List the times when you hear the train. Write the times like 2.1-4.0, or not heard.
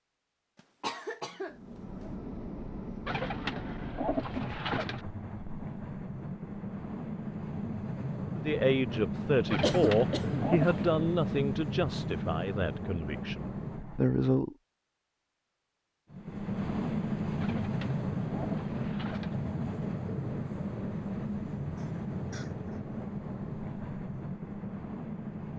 1.4-14.2, 16.1-25.5.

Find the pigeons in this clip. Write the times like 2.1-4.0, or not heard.
3.0-5.0, 9.5-11.0, 17.4-19.4.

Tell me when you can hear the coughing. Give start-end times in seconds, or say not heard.
0.6-2.1, 9.6-10.6, 21.8-22.8.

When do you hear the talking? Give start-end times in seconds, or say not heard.
8.3-14.6.